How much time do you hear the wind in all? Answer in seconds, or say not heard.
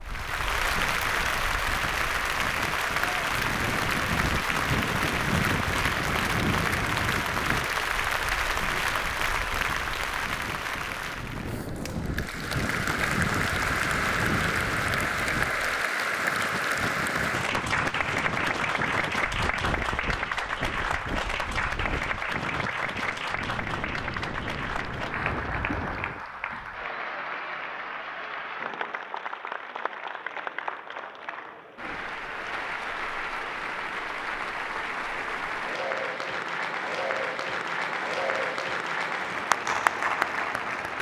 26 s.